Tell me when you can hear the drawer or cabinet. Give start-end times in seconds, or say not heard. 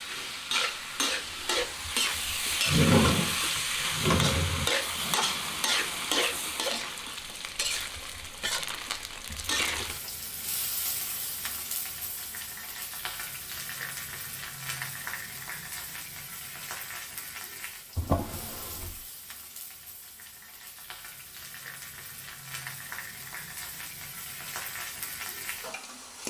2.6-4.7, 17.9-18.9.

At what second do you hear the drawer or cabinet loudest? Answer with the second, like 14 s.
3 s.